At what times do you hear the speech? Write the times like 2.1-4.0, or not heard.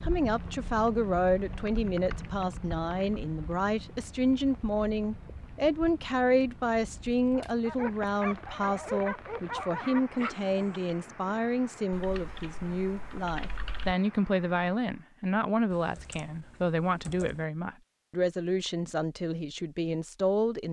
0.0-20.6.